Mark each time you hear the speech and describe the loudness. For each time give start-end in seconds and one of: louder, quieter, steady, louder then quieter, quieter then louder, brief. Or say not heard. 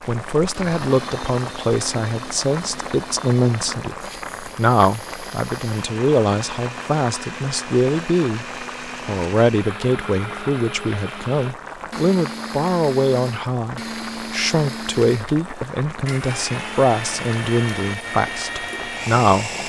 0.1-19.6 steady.